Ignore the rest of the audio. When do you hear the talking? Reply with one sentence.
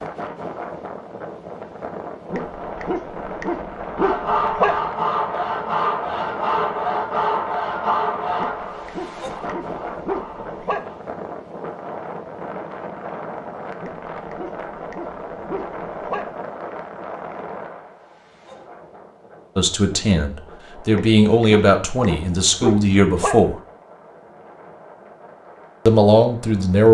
The talking can be heard from 19.6 to 23.6 s and from 25.9 to 26.8 s.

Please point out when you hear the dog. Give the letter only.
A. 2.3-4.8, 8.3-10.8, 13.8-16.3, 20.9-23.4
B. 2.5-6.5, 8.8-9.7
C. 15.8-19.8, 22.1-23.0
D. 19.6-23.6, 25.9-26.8
A.